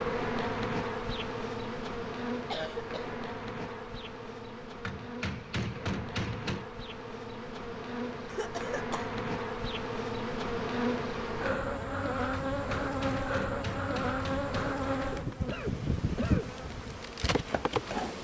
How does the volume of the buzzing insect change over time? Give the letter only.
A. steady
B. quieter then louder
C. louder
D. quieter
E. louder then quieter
B.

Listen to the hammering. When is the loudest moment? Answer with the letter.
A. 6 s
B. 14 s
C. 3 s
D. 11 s
A.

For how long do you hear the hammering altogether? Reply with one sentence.
You can hear the hammering for 4 seconds altogether.